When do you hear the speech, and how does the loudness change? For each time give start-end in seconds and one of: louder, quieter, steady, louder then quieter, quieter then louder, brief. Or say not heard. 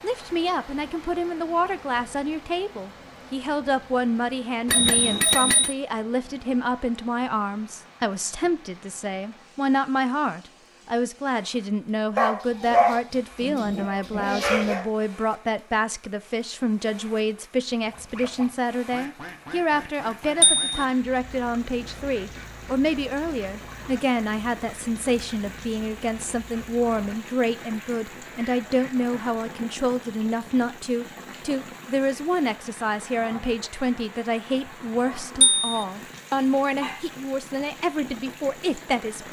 0.0-39.2 steady.